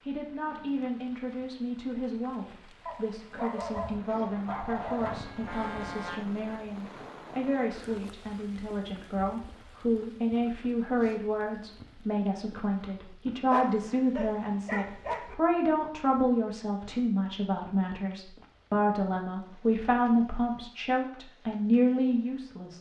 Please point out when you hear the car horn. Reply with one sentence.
You can hear the car horn from 5.0 to 6.7 s.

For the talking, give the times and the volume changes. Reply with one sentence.
The talking can be heard from 0.0 to 22.7 s, getting louder.